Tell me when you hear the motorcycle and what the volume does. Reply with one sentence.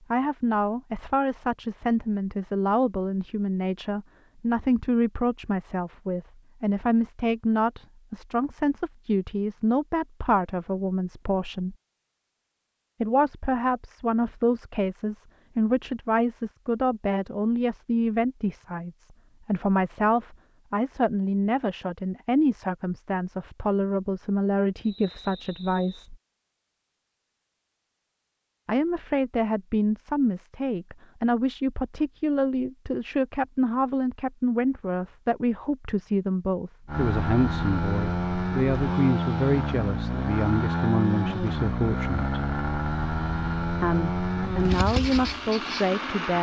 You can hear the motorcycle from 36.9 to 46.3 s, at a steady volume.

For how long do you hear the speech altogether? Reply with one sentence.
The speech can be heard for 41 seconds in total.